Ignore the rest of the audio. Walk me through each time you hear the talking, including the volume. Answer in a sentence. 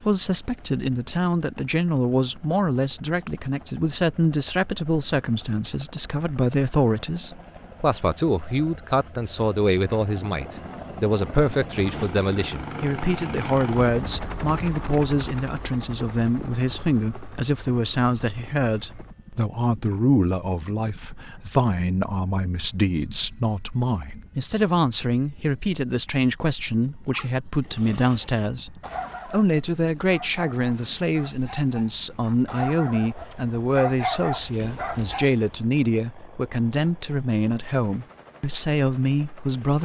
The talking can be heard from 0.0 to 39.8 s, at a steady volume.